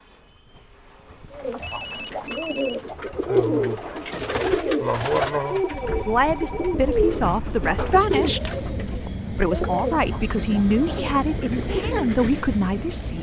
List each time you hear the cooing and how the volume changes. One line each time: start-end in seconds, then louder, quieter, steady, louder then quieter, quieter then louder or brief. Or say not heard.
1.3-12.2 quieter.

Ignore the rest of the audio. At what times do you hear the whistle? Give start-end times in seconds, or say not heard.
not heard.